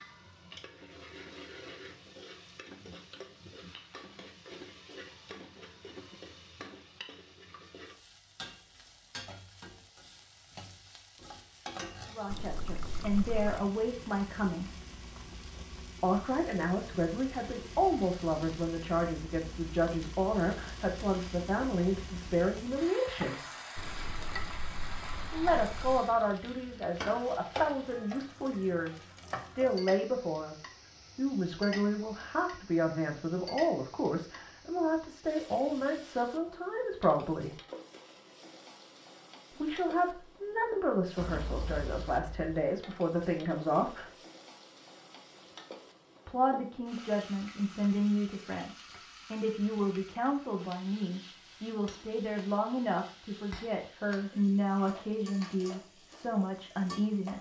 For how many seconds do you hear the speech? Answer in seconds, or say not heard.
38 s.